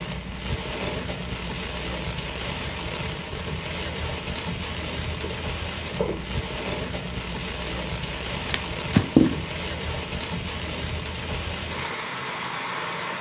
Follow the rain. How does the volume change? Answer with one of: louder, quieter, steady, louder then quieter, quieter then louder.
steady.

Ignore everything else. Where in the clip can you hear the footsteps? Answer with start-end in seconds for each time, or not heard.
5.1-6.3.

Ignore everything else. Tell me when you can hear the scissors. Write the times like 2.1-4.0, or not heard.
7.7-9.4.